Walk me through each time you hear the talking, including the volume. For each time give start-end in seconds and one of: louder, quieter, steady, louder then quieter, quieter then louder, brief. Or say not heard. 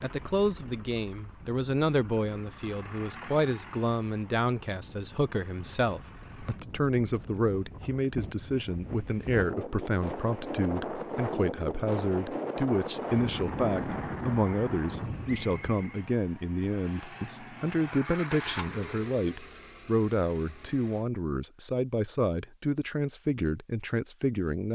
0.0-24.7 steady.